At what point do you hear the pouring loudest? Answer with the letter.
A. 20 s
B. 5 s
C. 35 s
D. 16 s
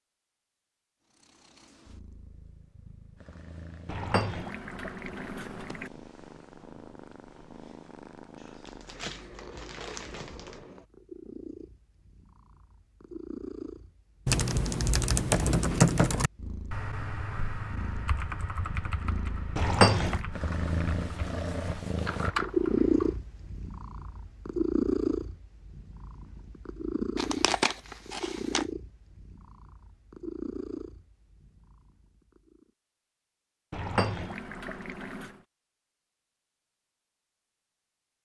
A.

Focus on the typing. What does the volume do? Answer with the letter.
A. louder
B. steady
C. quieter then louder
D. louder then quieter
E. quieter
C.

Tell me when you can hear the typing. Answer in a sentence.
The typing can be heard from 14.2 to 23.1 s.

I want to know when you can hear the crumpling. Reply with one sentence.
The crumpling can be heard from 8.7 to 10.7 s and from 27.1 to 28.6 s.